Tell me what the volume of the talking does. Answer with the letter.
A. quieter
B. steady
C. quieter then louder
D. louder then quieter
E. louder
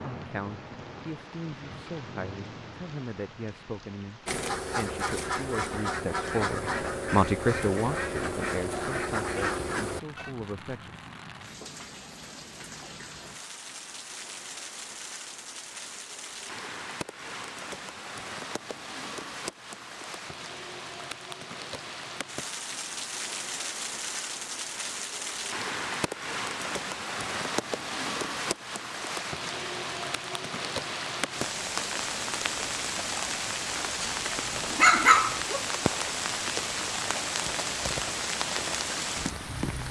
D.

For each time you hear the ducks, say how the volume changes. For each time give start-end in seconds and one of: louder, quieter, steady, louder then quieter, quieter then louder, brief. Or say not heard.
4.2-10.3 steady.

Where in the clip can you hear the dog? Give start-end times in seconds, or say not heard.
34.0-35.6.